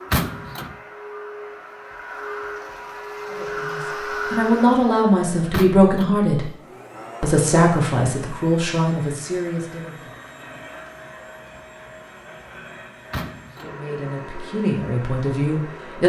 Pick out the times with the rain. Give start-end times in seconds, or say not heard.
not heard.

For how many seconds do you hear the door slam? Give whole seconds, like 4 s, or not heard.
2 s.